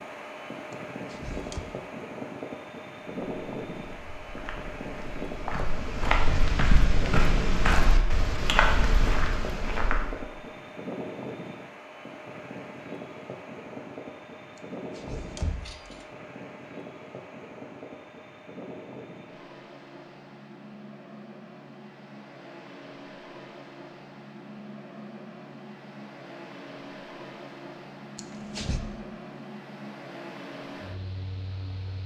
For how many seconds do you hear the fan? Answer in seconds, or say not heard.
32 s.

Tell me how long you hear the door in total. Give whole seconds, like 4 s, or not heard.
3 s.